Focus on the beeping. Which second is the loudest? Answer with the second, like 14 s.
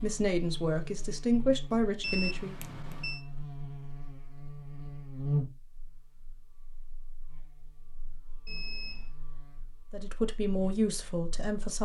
2 s.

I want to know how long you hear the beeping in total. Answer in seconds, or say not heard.
2 s.